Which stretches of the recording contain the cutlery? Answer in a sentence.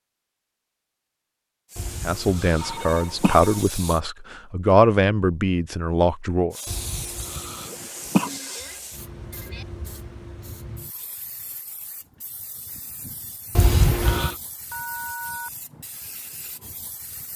You can't hear the cutlery here.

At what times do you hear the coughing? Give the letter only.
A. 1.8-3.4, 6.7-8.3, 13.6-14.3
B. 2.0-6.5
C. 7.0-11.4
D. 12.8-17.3
A.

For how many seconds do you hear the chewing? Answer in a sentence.
The chewing can't be heard in this clip.